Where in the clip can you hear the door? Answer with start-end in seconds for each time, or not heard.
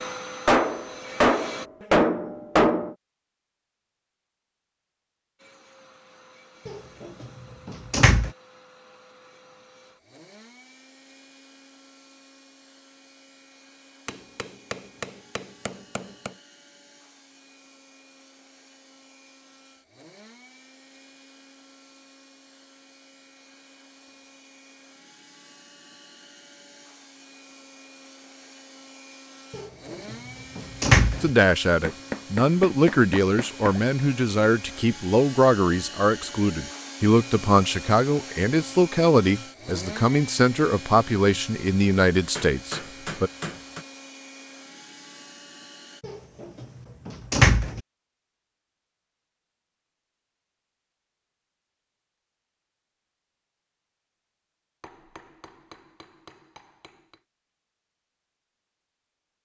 6.7-8.3, 29.5-31.3, 46.0-47.8.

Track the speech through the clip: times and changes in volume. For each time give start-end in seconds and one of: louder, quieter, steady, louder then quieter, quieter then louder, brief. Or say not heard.
31.2-43.3 steady.